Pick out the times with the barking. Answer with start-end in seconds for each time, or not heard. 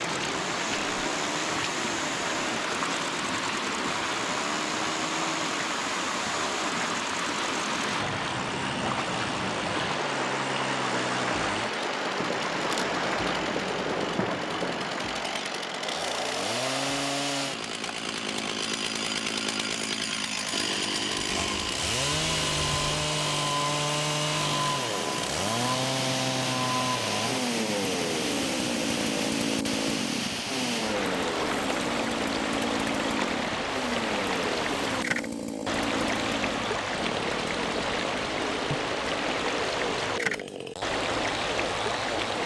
not heard.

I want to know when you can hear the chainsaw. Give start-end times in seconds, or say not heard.
0.0-42.4.